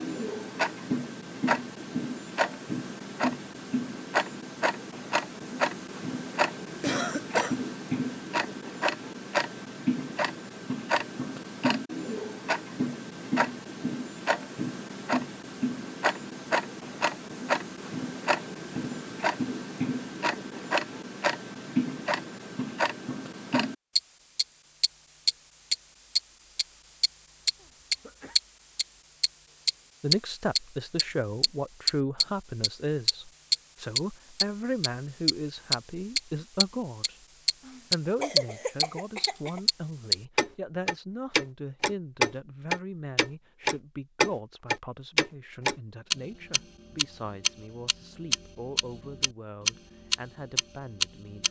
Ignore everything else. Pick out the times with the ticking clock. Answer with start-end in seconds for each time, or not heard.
0.0-51.4.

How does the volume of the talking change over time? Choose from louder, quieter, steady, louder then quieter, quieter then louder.
quieter.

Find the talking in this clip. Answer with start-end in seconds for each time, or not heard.
30.0-37.1, 37.9-51.4.